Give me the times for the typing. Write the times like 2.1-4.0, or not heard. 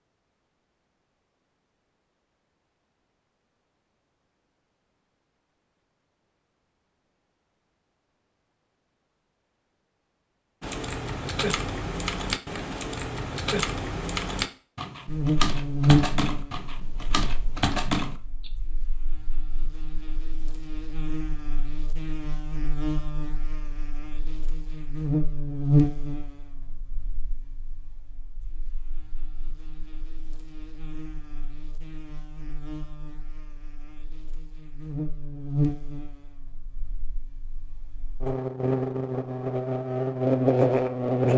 10.6-18.5.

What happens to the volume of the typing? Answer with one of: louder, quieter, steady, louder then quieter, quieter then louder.
steady.